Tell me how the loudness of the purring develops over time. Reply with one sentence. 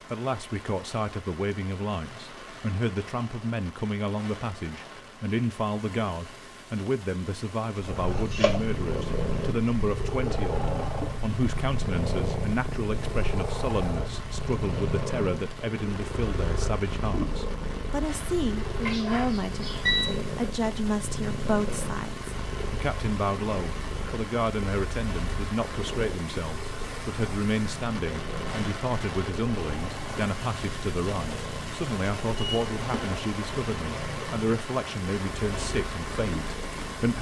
The loudness of the purring goes down.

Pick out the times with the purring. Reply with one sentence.
You can hear the purring from 7.8 to 37.1 s.